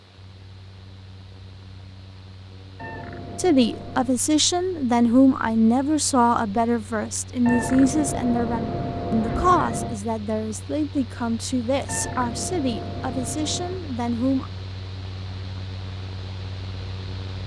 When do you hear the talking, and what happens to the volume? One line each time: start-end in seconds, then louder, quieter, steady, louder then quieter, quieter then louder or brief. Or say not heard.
3.4-14.5 quieter.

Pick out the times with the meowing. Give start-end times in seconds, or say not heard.
2.8-4.2, 7.5-10.0, 11.8-13.8.